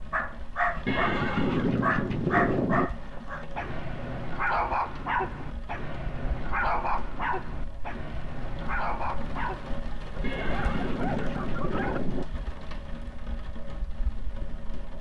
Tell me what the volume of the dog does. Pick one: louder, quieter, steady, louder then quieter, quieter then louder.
quieter.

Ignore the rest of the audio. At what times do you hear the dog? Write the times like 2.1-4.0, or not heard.
0.1-12.0.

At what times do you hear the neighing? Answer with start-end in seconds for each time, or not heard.
0.8-2.9, 10.2-12.2.